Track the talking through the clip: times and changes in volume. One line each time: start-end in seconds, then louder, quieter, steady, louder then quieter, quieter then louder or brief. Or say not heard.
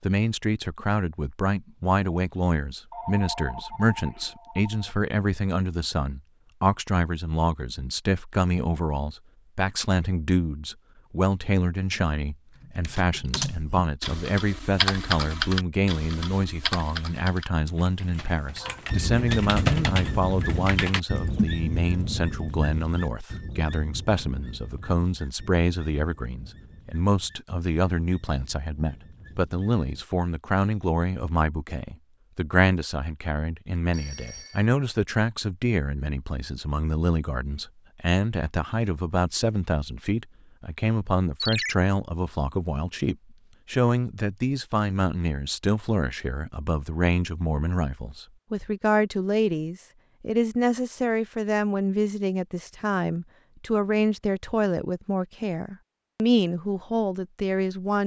0.0-58.0 steady.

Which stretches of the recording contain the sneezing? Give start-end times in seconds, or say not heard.
not heard.